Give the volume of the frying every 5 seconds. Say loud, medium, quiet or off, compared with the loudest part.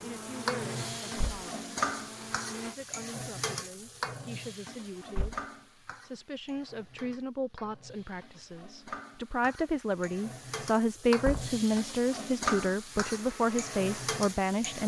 loud, medium, loud.